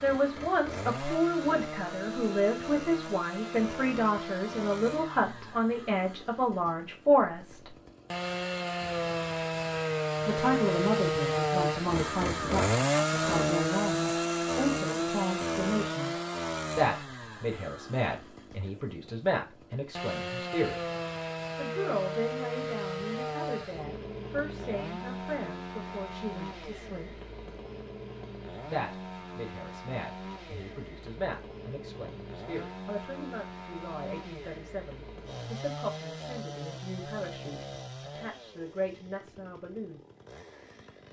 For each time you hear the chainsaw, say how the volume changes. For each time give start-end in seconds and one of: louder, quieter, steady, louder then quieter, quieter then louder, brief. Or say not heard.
0.0-41.0 louder then quieter.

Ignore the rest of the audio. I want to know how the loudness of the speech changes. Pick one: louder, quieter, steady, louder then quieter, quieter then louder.
quieter.